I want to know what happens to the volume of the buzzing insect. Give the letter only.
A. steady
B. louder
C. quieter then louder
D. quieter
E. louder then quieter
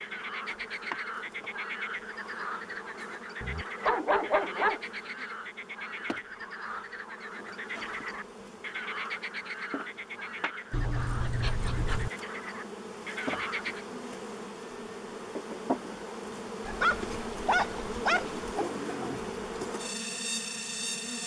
B.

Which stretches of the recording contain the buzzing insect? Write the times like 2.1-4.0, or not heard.
0.0-21.2.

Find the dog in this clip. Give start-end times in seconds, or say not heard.
3.4-5.2, 10.7-12.1, 16.6-18.6.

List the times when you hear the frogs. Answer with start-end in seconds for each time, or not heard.
0.0-13.8.